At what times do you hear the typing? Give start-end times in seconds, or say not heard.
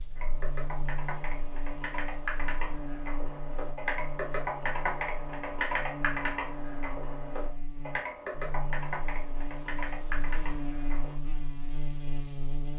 0.1-11.2.